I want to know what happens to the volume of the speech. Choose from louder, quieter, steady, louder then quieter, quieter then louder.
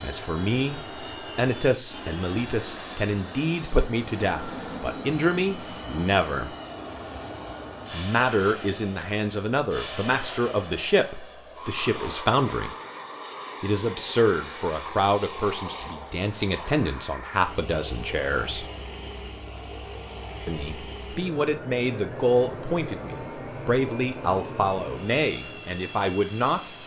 steady.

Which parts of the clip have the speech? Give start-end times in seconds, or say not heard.
0.0-6.5, 7.9-12.8, 13.6-18.6, 20.4-26.8.